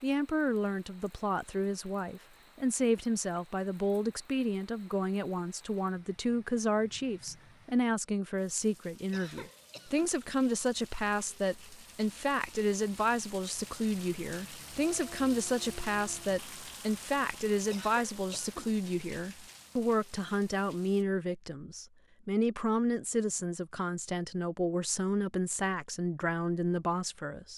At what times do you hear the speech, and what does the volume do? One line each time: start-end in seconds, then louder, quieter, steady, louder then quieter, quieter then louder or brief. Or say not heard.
0.0-27.5 steady.